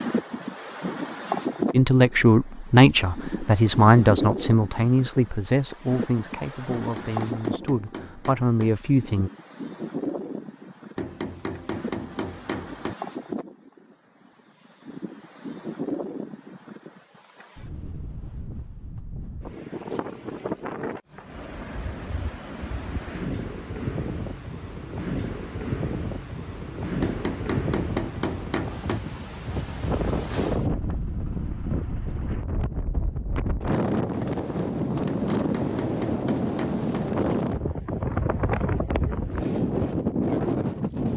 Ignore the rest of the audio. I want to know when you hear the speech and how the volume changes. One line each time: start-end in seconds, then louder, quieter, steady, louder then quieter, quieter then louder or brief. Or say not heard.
1.7-9.3 quieter then louder.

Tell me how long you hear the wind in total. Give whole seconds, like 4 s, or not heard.
41 s.